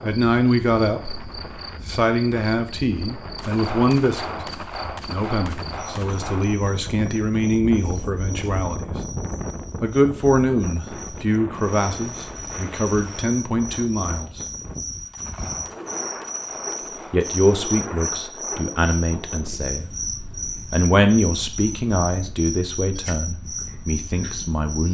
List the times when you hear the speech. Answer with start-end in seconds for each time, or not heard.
0.0-8.8, 9.8-14.4, 17.1-20.1, 20.7-24.9.